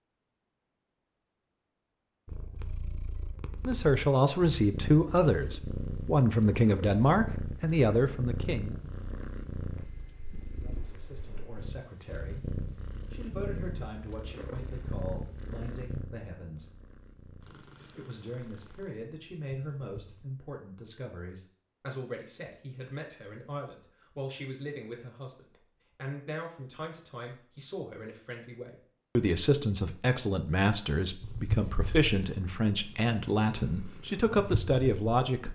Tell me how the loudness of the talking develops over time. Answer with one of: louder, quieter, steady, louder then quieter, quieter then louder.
quieter then louder.